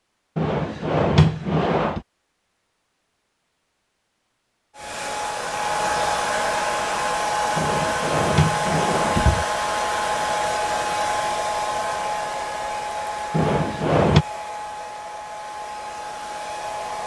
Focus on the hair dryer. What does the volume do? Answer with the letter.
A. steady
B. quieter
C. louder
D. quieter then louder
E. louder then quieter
B.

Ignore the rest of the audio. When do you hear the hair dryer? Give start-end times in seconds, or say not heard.
4.8-17.0.